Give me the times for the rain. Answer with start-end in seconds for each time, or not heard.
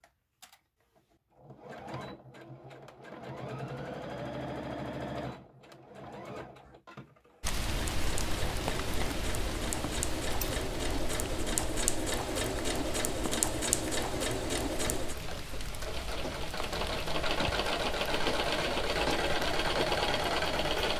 7.4-20.9.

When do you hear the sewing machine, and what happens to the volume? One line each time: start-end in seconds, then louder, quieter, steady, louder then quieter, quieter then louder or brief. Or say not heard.
0.0-20.9 louder.